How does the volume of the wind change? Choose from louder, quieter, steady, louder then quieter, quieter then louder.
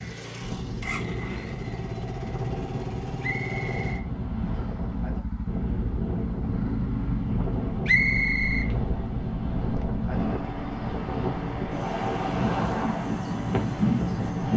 louder.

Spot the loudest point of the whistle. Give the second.
8 s.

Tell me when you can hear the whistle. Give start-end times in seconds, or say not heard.
3.2-4.8, 7.8-8.7.